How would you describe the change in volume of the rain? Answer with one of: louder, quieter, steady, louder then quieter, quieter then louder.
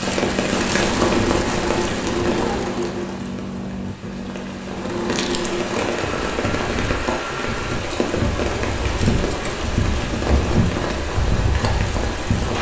quieter then louder.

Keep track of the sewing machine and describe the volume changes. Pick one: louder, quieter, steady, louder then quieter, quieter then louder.
quieter.